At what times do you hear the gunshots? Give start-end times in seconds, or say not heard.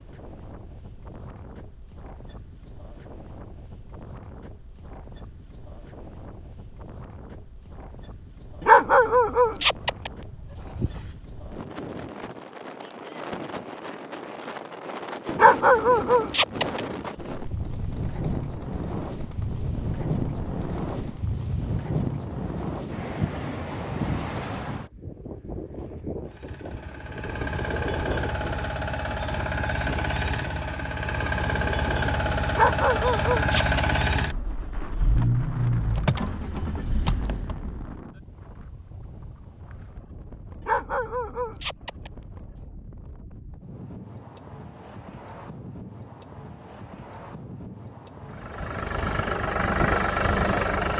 17.3-21.2.